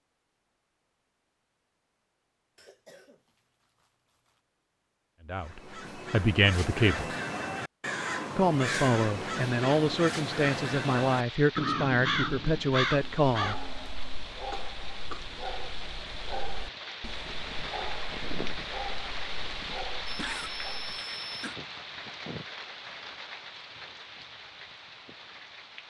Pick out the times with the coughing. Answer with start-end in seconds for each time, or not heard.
2.5-4.4, 14.5-15.3, 20.1-21.6.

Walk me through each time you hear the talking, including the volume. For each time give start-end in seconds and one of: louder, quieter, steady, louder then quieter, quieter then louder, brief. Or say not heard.
5.2-7.2 brief
8.3-13.6 steady.